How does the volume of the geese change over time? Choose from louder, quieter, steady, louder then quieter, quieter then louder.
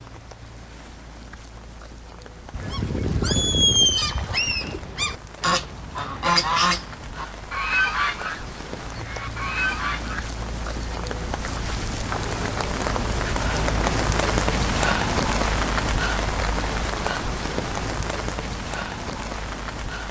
quieter.